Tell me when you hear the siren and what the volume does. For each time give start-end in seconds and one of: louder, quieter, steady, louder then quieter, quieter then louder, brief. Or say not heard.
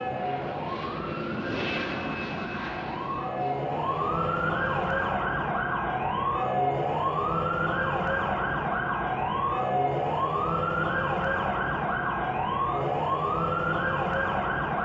0.0-14.8 louder.